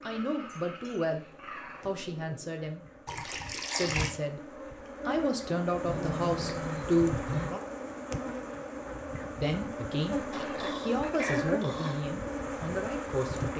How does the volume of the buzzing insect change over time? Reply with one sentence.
The volume of the buzzing insect goes up.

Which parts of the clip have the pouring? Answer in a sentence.
The pouring can be heard from 3.0 to 4.1 s.